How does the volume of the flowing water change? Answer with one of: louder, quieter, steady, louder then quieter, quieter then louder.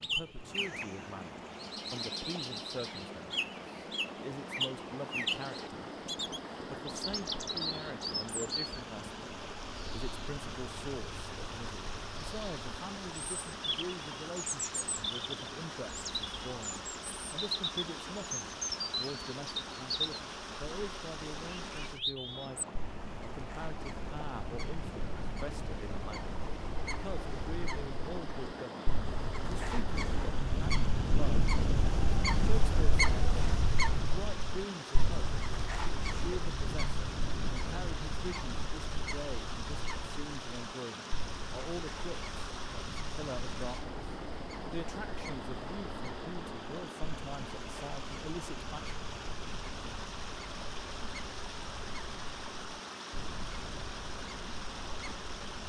steady.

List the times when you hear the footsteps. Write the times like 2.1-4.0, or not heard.
not heard.